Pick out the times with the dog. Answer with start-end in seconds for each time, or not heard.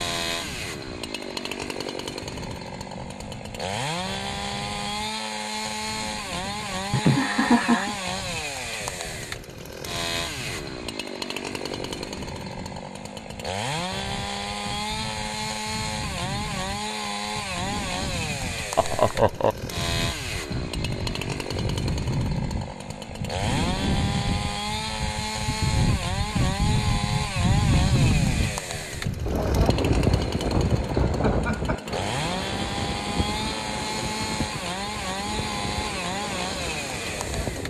not heard.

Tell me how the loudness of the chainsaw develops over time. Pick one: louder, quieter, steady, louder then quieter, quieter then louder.
steady.